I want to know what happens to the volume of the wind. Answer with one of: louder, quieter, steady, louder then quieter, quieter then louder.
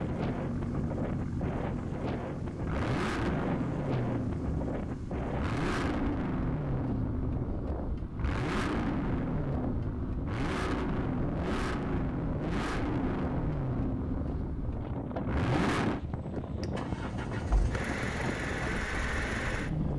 steady.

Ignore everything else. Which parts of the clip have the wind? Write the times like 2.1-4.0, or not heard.
0.0-19.9.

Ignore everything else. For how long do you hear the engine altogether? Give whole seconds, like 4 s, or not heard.
20 s.